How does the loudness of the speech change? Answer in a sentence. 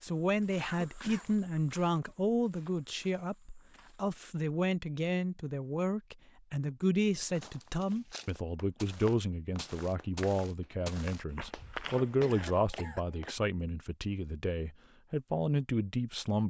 The loudness of the speech stays about the same.